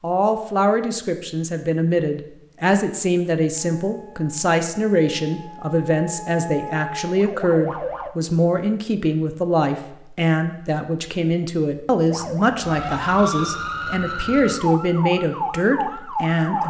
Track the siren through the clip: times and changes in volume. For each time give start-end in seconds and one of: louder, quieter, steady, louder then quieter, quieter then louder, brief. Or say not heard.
3.8-8.1 louder
12.1-16.6 steady.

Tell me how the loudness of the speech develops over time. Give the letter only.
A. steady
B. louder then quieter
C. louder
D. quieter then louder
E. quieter
A.